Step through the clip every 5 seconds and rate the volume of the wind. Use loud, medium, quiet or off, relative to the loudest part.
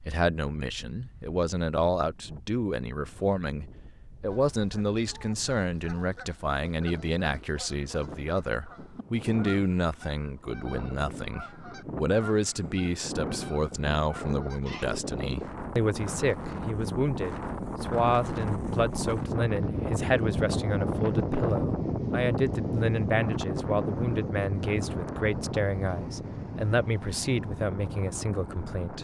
quiet, quiet, medium, loud, loud, medium.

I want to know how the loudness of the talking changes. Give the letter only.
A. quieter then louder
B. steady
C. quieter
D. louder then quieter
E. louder
B.